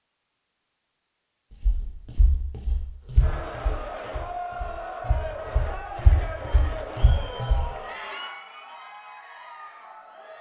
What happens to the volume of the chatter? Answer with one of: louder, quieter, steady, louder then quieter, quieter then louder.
quieter.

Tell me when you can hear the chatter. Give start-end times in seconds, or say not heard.
3.1-10.3.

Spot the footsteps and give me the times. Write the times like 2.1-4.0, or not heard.
1.6-7.7.